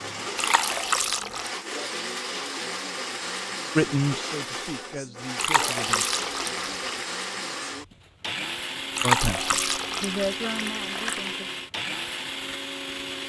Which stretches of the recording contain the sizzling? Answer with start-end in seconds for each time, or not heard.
not heard.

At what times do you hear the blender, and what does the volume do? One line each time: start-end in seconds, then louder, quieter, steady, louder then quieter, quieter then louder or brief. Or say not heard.
0.0-13.2 steady.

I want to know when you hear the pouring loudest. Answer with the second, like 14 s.
9 s.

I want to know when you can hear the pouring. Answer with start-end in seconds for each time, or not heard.
0.3-1.5, 5.3-7.0, 8.9-11.3.